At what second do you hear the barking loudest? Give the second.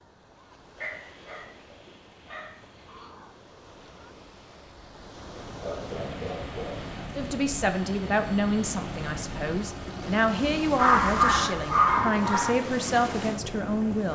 11 s.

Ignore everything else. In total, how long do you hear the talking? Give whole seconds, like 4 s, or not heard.
7 s.